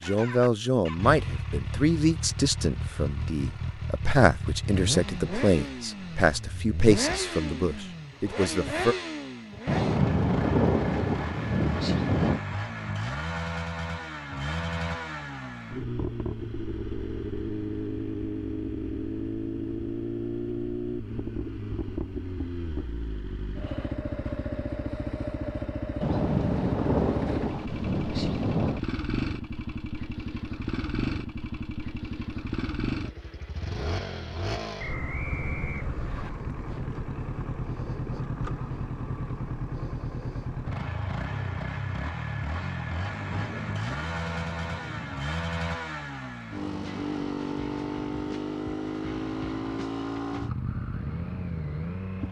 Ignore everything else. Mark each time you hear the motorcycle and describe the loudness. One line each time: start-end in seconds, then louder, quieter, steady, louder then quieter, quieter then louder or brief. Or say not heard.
0.0-52.2 steady.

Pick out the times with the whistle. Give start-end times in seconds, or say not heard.
34.8-36.3.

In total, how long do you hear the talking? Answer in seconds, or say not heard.
9 s.